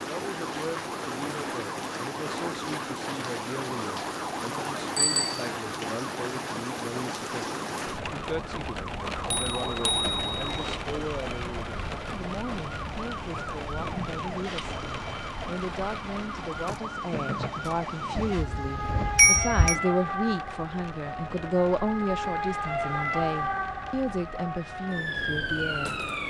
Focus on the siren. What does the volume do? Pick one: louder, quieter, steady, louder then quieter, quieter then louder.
louder.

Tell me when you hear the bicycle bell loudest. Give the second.
19 s.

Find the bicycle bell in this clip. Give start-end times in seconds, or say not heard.
5.0-5.5, 9.2-10.8, 18.2-19.8.